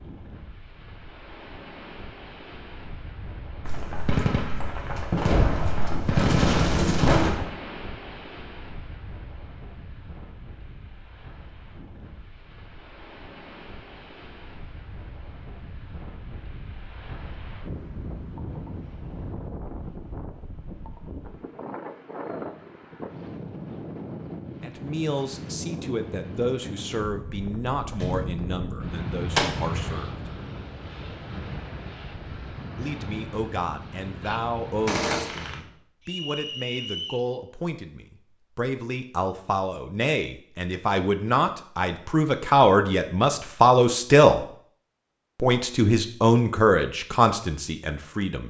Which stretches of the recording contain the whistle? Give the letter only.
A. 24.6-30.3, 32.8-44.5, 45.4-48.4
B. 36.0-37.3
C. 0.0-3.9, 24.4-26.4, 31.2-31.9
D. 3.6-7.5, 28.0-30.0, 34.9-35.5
B.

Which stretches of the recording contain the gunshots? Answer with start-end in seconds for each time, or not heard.
3.6-7.5, 28.0-30.0, 34.9-35.5.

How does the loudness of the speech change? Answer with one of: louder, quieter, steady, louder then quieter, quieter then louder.
louder.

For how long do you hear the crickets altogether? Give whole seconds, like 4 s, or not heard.
not heard.